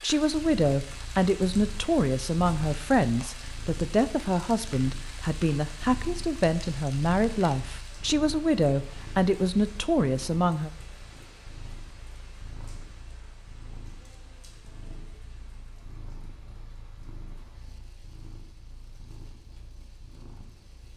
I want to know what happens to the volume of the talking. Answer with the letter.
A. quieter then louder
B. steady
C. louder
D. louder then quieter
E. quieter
B.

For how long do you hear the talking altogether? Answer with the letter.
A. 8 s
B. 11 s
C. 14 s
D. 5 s
B.